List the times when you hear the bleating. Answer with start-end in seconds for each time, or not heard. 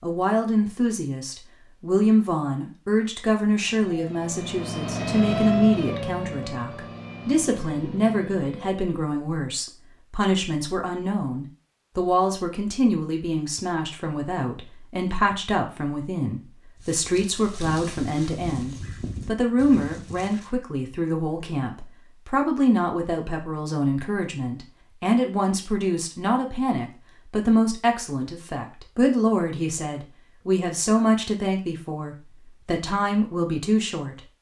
not heard.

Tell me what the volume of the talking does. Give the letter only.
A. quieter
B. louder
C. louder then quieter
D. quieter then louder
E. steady
E.